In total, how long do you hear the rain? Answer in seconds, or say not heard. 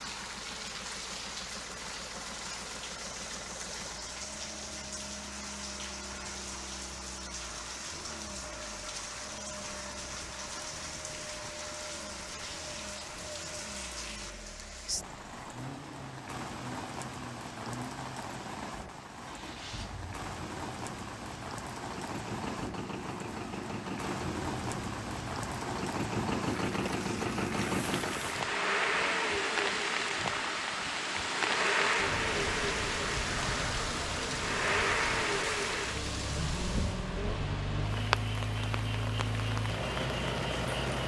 41 s.